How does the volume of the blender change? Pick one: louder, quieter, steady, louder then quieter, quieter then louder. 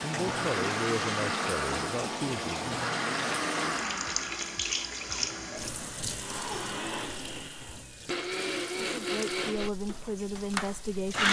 quieter then louder.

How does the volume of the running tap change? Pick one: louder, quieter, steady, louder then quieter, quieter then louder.
quieter.